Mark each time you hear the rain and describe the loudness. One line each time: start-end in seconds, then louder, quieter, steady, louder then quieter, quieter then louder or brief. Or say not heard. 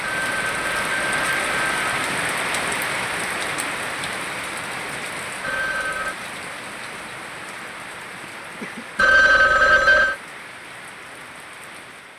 0.0-12.1 quieter.